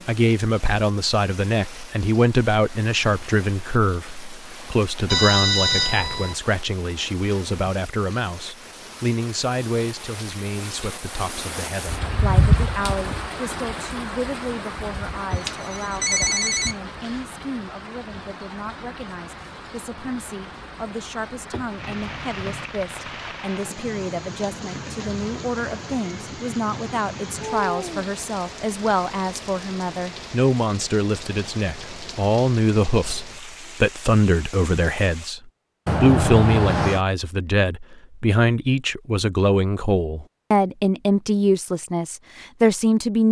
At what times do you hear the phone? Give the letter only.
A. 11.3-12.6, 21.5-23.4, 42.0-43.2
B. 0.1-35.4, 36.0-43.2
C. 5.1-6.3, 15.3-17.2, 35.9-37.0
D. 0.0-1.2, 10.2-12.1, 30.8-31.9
C.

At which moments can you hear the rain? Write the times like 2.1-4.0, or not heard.
0.0-35.4.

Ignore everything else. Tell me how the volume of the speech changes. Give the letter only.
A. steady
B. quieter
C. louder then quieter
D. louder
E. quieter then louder
E.